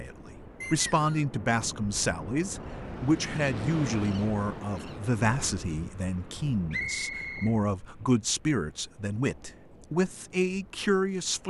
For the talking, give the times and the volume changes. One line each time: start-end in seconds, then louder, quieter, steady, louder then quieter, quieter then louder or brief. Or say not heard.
0.0-11.4 steady.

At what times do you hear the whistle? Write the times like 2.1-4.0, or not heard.
0.6-1.2, 6.7-7.5.